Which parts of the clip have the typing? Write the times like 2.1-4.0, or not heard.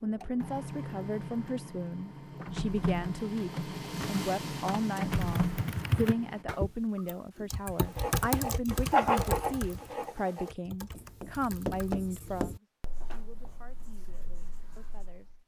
5.1-12.0.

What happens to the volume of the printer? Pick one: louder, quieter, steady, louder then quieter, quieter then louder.
louder.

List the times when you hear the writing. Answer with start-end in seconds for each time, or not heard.
7.8-15.4.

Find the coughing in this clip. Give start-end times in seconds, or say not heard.
not heard.